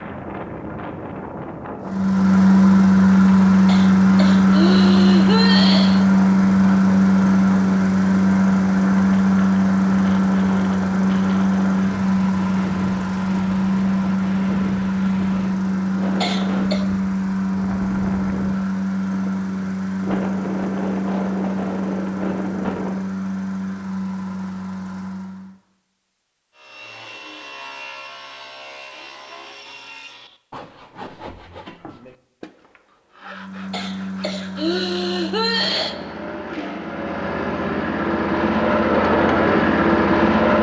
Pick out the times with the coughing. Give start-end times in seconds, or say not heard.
3.6-6.0, 16.2-16.9, 33.7-36.0.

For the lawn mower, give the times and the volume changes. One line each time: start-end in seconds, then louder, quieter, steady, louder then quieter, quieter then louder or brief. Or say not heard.
1.8-25.6 quieter
33.2-40.5 louder.